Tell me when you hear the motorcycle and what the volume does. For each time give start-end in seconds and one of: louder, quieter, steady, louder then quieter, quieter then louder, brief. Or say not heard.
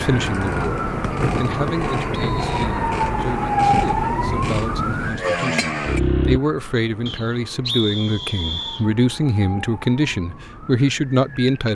0.2-6.4 louder.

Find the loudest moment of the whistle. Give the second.
8 s.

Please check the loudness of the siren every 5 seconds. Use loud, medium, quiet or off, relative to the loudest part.
loud, quiet, quiet.